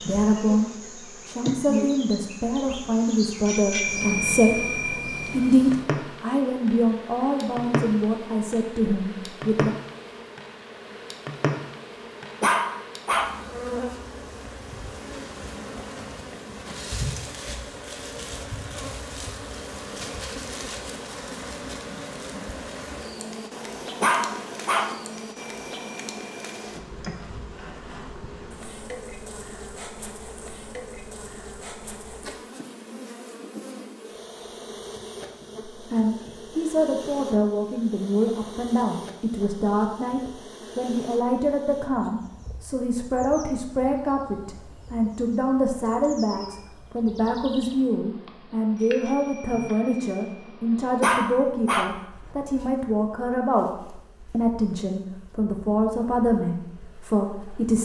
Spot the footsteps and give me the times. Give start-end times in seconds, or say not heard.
not heard.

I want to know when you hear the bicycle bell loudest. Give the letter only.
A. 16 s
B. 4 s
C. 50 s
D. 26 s
B.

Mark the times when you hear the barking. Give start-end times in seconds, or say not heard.
12.4-13.3, 24.0-24.9, 51.0-51.9.